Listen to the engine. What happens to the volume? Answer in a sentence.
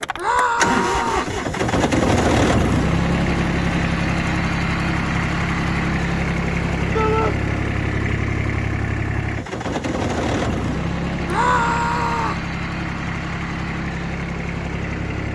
The volume of the engine goes down.